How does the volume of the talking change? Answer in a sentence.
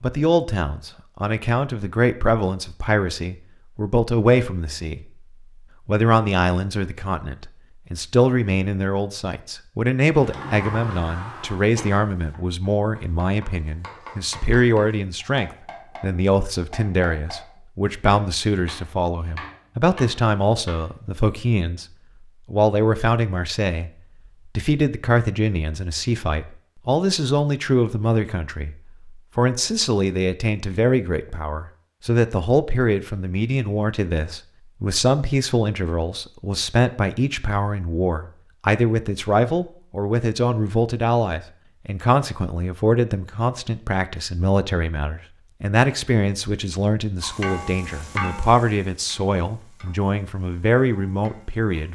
The volume of the talking stays about the same.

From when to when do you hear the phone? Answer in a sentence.
The phone can't be heard in this clip.